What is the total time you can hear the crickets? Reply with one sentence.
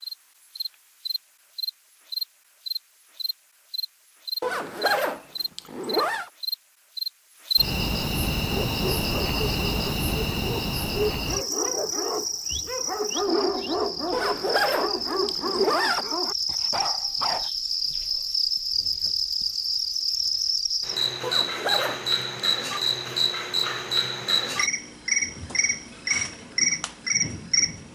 The crickets can be heard for 28 seconds in total.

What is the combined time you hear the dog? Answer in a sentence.
You can hear the dog for 9 seconds altogether.